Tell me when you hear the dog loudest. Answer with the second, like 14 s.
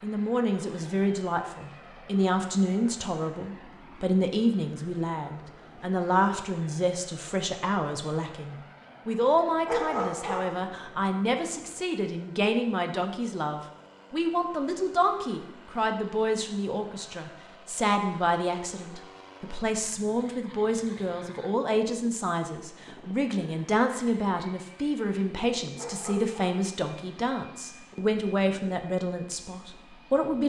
10 s.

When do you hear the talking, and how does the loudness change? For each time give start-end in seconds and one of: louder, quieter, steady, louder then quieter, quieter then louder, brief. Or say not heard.
0.0-30.4 steady.